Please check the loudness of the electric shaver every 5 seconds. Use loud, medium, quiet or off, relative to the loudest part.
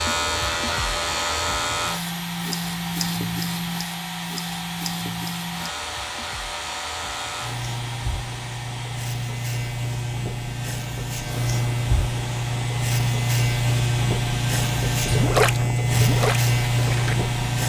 medium, medium, loud, loud.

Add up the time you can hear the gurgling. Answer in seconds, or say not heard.
2 s.